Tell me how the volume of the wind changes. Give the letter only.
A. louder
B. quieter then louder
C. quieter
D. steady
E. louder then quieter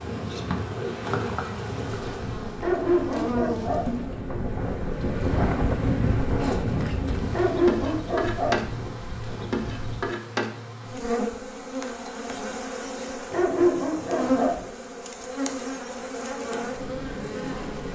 E.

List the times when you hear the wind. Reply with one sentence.
You can hear the wind from 0.0 to 10.1 s.